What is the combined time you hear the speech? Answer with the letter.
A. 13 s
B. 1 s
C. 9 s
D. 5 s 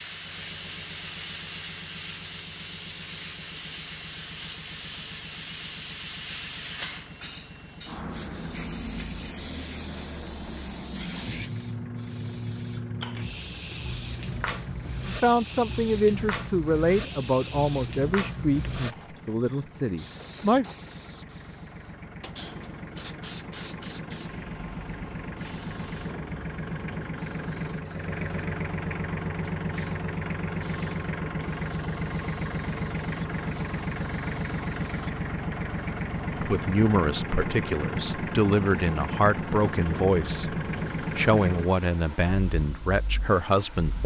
A.